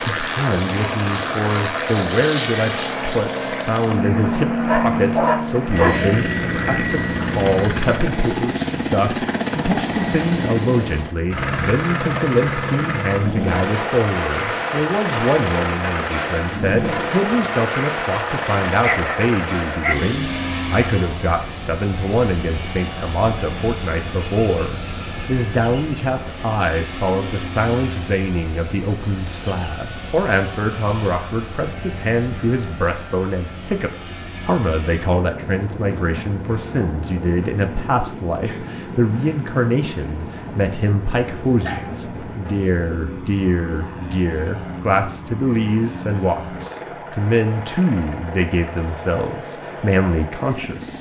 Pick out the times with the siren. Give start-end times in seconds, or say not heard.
not heard.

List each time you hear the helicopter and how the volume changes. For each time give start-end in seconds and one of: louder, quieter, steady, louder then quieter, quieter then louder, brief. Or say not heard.
0.0-50.9 quieter.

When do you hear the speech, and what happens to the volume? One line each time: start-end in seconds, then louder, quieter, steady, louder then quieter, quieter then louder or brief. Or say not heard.
0.0-50.9 steady.